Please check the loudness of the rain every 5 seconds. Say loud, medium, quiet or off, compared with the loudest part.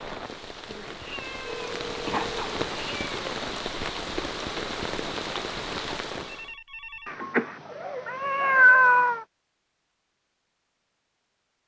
loud, loud, off.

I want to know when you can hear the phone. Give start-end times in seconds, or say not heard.
1.4-2.4, 6.2-7.1.